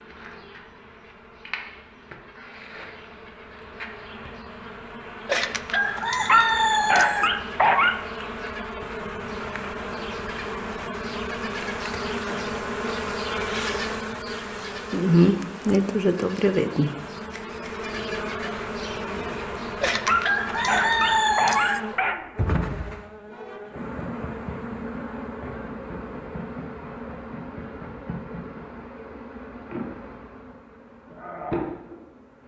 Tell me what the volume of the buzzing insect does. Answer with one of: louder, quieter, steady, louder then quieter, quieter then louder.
louder then quieter.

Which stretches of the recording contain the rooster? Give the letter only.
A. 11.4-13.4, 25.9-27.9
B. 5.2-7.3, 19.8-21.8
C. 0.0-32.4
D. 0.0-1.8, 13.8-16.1
B.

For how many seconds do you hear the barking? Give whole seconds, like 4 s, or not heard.
4 s.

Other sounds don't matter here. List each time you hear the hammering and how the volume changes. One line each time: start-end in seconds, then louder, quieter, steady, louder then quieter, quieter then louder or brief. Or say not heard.
not heard.